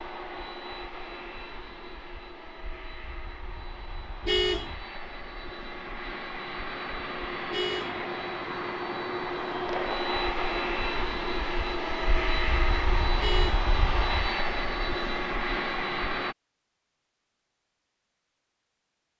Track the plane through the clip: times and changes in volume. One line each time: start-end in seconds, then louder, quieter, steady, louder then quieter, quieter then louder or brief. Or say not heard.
0.0-16.4 louder.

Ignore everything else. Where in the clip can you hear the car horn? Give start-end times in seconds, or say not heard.
4.2-4.8, 7.5-8.0, 13.2-13.7.